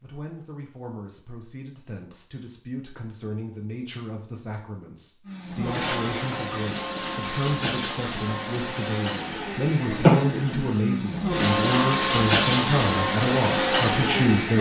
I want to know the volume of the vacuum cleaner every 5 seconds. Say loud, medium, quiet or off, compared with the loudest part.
off, medium, loud.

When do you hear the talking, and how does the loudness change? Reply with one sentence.
You can hear the talking from 0.0 to 14.5 s, getting louder.